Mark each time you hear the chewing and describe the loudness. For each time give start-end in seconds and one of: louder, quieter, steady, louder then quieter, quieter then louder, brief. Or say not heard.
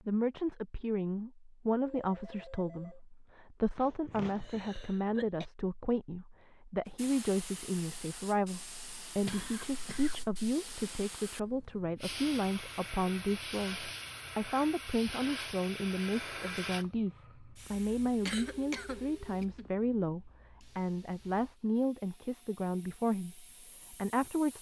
not heard.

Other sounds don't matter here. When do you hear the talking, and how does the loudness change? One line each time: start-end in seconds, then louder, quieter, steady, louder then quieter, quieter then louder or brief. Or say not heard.
0.1-24.5 steady.